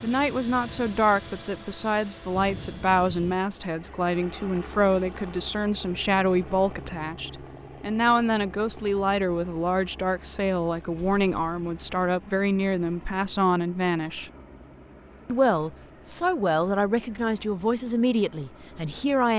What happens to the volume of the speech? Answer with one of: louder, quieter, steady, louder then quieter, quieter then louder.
steady.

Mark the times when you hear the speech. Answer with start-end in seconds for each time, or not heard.
0.0-14.3, 15.2-19.3.